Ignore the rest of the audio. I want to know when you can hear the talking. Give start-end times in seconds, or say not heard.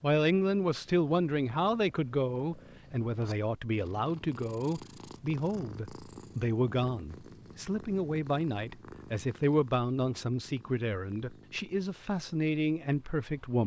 0.0-13.6.